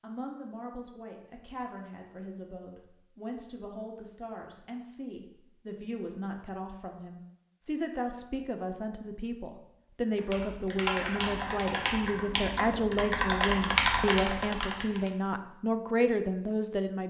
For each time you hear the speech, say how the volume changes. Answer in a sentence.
You can hear the speech from 0.0 to 17.0 s, getting louder.